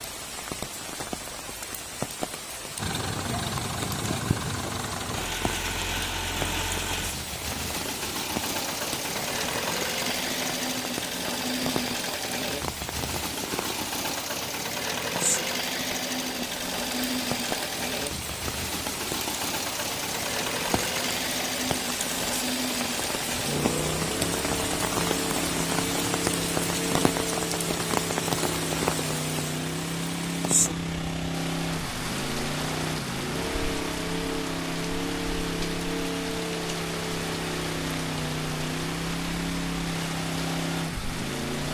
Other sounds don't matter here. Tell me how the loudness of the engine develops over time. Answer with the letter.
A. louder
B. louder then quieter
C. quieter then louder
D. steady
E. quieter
D.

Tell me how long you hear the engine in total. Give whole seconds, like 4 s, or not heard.
39 s.